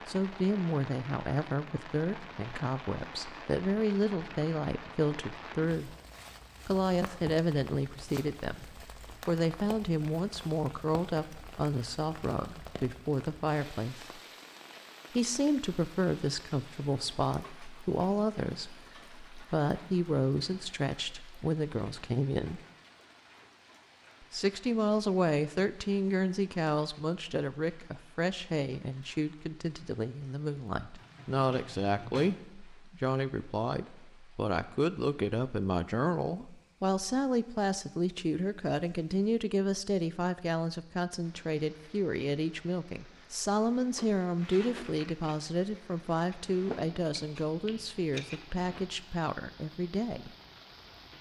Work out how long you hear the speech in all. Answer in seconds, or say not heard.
47 s.